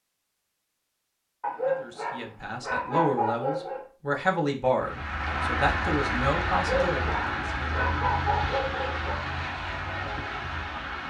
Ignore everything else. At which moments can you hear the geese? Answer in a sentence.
The geese can't be heard in this clip.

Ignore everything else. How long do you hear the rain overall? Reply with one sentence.
You can hear the rain for 6 seconds altogether.